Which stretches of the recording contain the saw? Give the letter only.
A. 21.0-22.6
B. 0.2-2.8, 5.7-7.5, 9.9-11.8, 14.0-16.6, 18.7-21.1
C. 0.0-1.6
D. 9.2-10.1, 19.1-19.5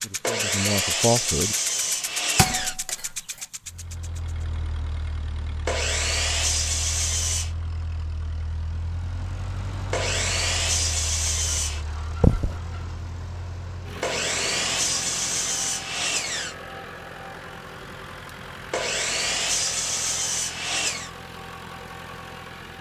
B.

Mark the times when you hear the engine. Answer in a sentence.
The engine can be heard from 0.0 to 22.7 s.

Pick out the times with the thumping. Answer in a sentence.
You can hear the thumping from 2.4 to 3.1 s and from 12.2 to 12.6 s.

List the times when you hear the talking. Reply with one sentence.
The talking can be heard from 0.0 to 1.6 s.